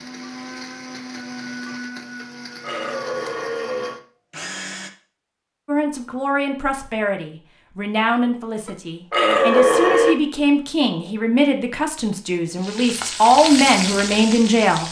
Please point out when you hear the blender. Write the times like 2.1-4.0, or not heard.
0.0-4.9.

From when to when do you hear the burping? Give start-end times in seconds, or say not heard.
2.2-4.0, 8.7-10.2.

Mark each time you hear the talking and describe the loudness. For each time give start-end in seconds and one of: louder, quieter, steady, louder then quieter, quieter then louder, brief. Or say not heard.
5.7-14.8 louder.